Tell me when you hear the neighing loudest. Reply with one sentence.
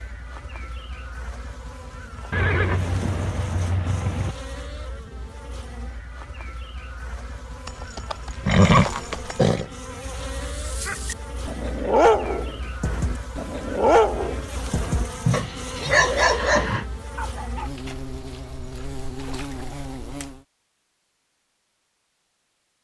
The volume of the neighing peaks at 9 seconds.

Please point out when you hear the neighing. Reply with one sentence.
The neighing can be heard from 2.3 to 4.3 s, from 7.7 to 9.7 s and from 15.2 to 16.9 s.